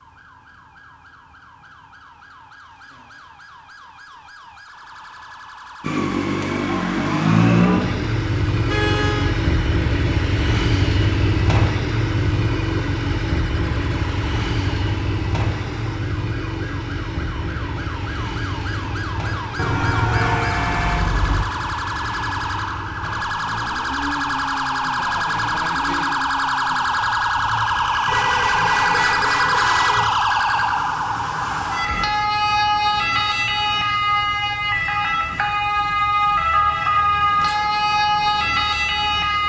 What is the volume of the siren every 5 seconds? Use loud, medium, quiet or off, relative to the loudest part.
quiet, quiet, quiet, quiet, medium, loud, loud, loud.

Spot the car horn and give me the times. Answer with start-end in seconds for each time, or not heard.
8.7-9.3, 19.6-21.4, 28.1-30.1.